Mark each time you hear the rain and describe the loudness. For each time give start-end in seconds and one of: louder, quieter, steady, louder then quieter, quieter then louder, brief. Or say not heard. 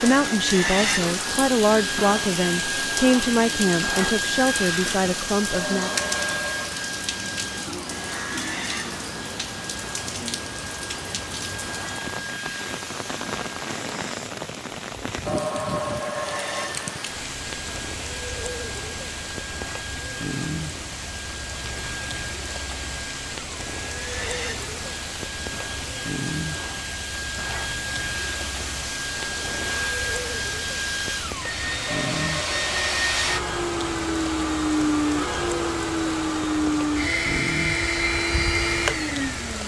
0.0-39.6 steady.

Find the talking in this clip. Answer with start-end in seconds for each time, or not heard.
0.0-6.0.